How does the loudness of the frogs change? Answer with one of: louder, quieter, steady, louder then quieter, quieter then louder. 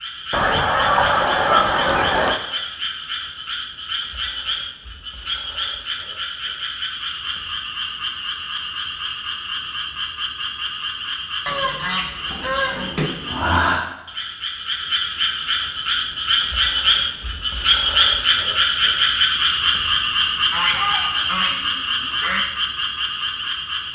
louder.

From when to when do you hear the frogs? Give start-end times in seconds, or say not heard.
0.0-23.9.